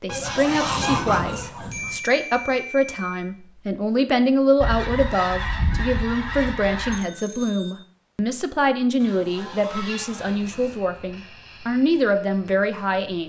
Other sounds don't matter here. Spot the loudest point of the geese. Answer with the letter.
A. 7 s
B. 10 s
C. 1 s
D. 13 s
C.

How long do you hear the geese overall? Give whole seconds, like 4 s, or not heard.
6 s.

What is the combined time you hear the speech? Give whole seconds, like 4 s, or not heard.
13 s.